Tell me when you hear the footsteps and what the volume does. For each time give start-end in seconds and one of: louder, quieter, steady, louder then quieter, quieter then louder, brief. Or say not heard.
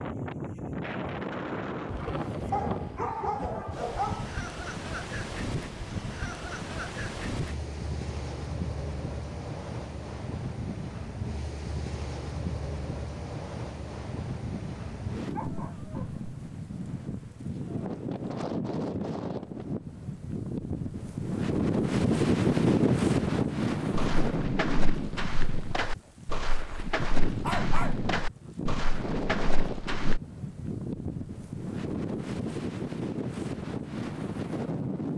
23.9-30.2 steady.